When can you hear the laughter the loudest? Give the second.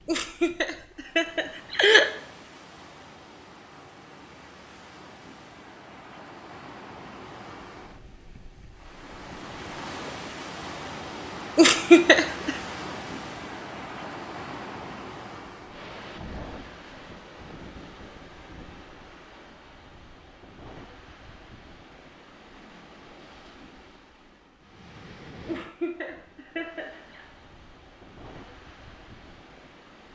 12 s.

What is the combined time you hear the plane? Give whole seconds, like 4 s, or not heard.
not heard.